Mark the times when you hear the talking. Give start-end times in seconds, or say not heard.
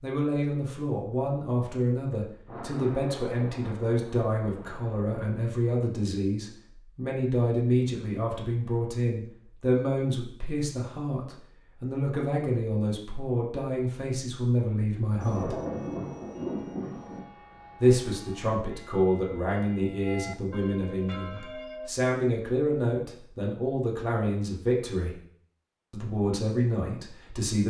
0.0-15.6, 17.8-25.2, 25.9-27.6.